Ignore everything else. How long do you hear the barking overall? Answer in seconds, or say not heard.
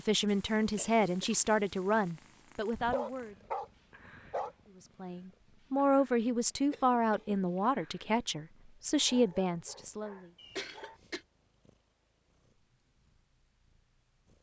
4 s.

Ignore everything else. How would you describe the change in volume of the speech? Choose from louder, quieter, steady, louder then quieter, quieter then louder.
steady.